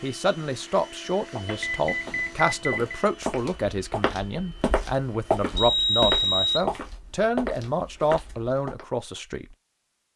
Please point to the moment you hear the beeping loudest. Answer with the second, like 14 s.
6 s.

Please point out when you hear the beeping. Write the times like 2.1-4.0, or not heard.
1.4-3.0, 5.5-6.7.